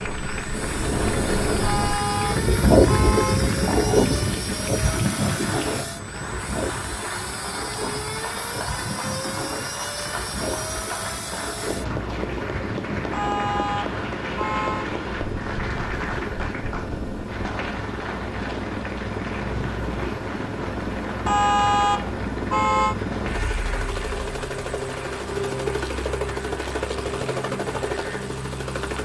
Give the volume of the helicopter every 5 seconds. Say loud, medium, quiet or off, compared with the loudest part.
medium, medium, medium, loud, loud, loud.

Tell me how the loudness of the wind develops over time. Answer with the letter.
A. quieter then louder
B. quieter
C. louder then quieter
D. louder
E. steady
B.